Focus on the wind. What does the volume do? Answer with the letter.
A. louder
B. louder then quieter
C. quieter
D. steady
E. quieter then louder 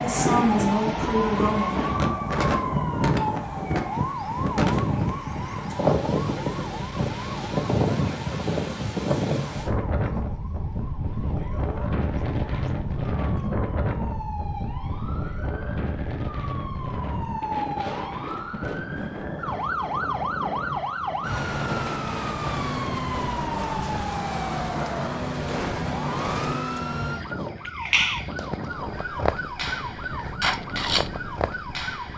C.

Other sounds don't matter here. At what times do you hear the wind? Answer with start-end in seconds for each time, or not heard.
0.0-32.1.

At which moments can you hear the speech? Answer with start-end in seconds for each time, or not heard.
0.0-1.8.